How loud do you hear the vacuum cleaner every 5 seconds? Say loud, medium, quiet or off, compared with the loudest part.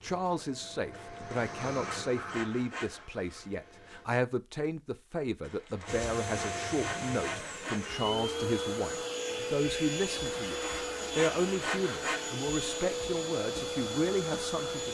medium, loud, loud.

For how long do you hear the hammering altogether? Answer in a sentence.
You can't hear the hammering here.